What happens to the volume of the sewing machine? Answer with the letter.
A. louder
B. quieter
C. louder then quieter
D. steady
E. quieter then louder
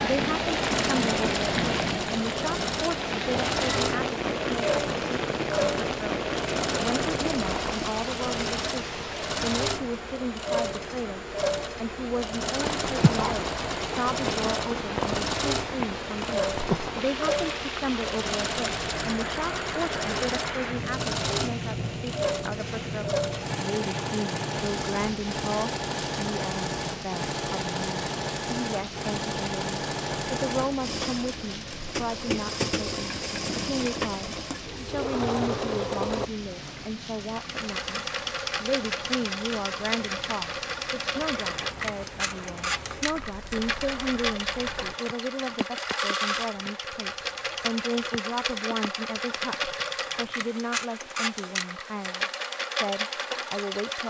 D.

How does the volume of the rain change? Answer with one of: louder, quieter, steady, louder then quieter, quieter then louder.
quieter.